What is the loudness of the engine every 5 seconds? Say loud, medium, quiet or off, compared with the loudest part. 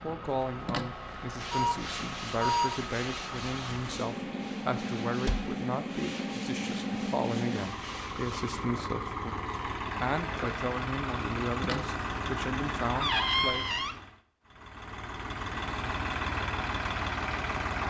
medium, loud, loud, loud.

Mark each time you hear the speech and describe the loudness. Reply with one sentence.
You can hear the speech from 0.0 to 13.7 s, at a steady volume.